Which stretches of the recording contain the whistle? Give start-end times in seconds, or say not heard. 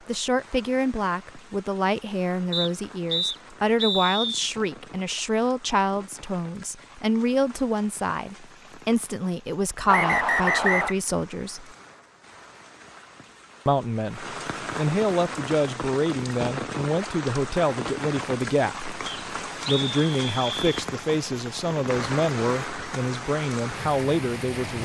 2.5-4.5, 9.8-10.9, 19.1-20.7.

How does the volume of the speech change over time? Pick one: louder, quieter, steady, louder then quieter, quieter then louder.
steady.